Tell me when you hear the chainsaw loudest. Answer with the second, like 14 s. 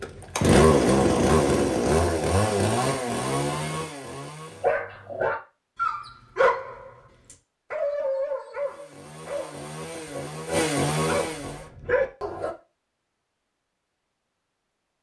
1 s.